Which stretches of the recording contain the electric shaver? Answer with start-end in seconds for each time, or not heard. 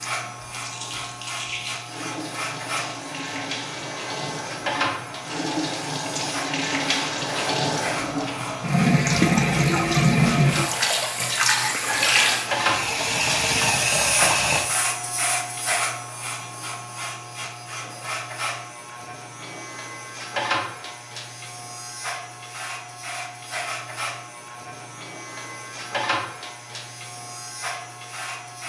0.0-28.6.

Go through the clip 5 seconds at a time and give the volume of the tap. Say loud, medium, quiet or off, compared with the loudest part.
quiet, loud, loud, off, off, off.